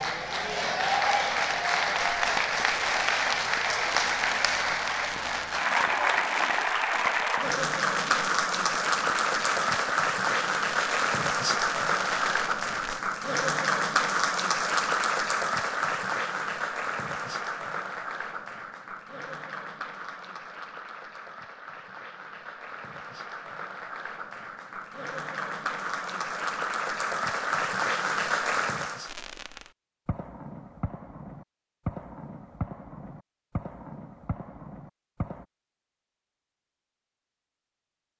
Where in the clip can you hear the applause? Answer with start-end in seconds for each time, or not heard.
0.0-29.1.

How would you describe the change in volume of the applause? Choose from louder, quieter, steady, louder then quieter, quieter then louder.
quieter then louder.